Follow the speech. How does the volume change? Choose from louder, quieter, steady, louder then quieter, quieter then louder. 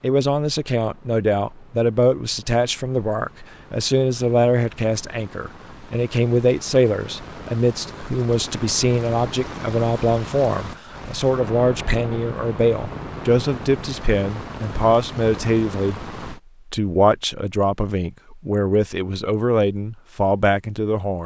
steady.